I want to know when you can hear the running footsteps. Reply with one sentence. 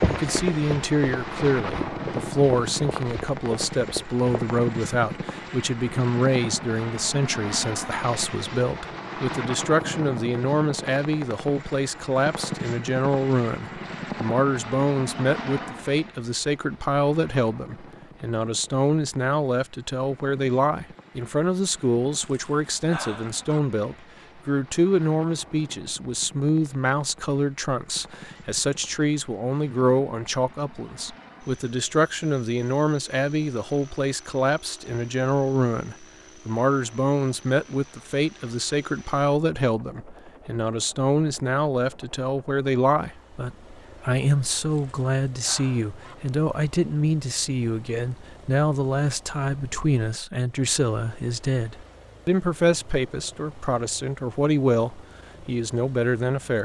The running footsteps can be heard from 0.0 to 4.6 s.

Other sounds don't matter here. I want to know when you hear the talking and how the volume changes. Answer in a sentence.
You can hear the talking from 0.1 to 56.6 s, at a steady volume.